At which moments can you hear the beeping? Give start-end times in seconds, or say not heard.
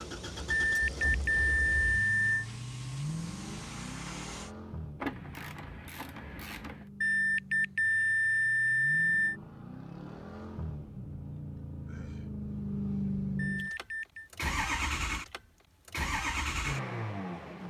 0.7-2.5, 7.0-9.3, 13.3-14.3.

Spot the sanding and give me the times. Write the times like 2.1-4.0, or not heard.
not heard.